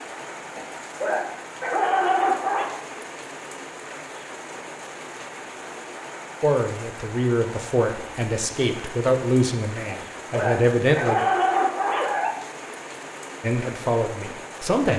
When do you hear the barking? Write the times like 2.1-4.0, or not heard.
0.6-2.6, 9.8-12.3.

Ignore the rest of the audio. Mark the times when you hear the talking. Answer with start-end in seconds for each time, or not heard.
6.4-11.2, 13.4-14.9.